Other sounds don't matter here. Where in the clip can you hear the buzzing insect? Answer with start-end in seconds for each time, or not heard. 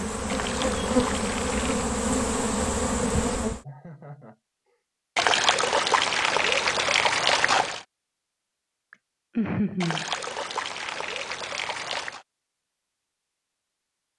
0.0-3.6.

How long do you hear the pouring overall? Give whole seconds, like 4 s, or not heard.
7 s.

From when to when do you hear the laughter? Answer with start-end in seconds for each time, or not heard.
3.6-4.8, 8.9-10.1.